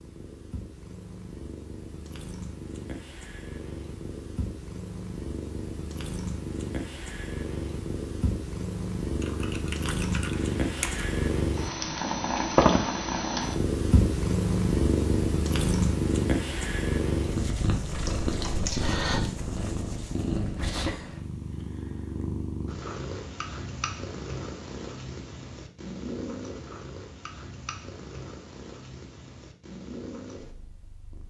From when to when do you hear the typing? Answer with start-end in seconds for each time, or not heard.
9.2-11.1, 17.9-19.2.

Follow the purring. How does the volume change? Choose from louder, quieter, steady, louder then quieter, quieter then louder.
louder then quieter.